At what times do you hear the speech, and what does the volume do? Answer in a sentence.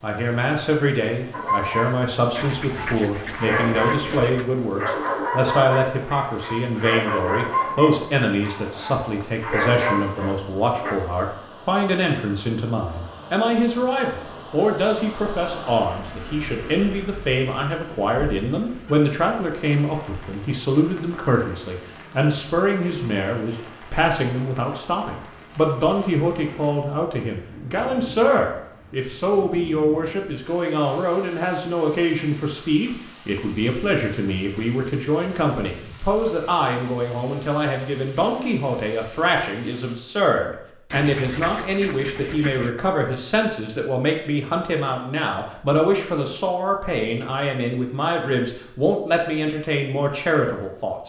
The speech can be heard from 0.0 to 51.0 s, at a steady volume.